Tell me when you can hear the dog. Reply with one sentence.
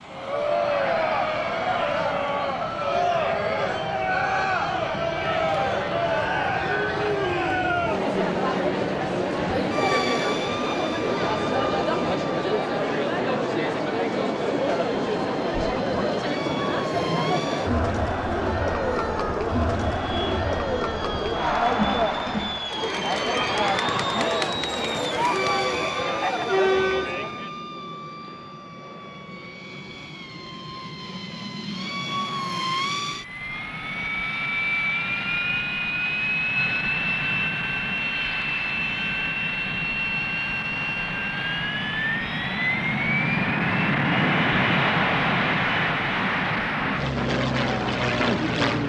You can't hear the dog here.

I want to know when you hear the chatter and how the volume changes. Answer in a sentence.
You can hear the chatter from 0.1 to 27.5 s, at a steady volume.